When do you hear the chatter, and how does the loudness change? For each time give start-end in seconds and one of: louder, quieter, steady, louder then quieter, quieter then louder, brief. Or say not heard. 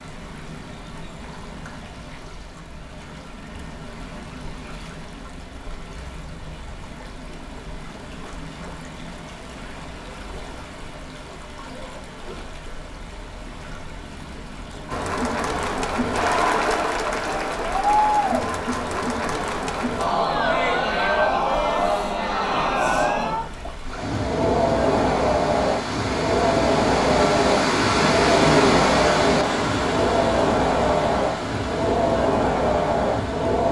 14.9-33.6 steady.